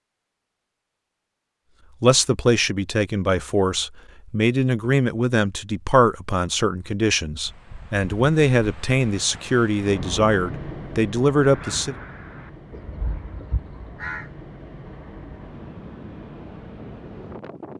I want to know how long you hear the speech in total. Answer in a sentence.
You can hear the speech for 10 seconds altogether.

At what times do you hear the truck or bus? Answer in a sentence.
The truck or bus can't be heard in this clip.